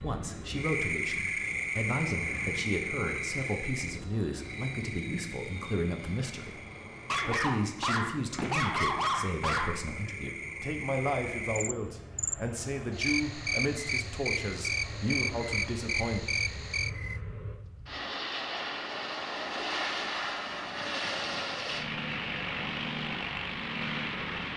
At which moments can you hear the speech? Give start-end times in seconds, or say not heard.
0.0-16.2.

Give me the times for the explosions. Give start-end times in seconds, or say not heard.
not heard.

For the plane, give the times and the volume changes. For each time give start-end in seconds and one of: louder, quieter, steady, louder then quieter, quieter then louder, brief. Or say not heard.
0.0-24.5 louder.